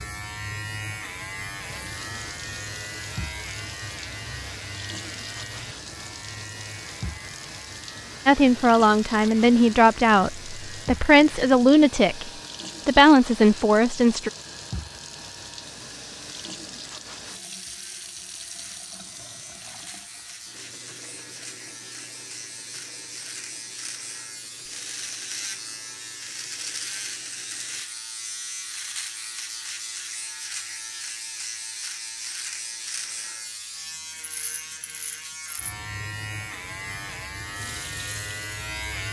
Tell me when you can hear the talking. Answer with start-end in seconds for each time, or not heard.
8.2-14.3.